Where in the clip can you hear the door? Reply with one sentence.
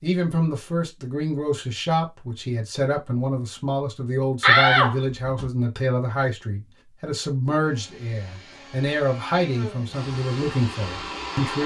You can hear the door from 4.4 to 5.5 s.